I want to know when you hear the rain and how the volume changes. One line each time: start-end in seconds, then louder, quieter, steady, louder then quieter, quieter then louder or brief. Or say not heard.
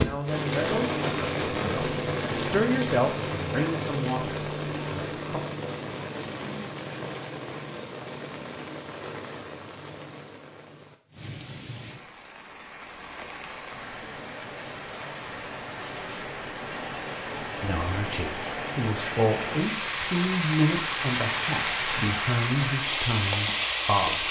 0.0-24.2 quieter then louder.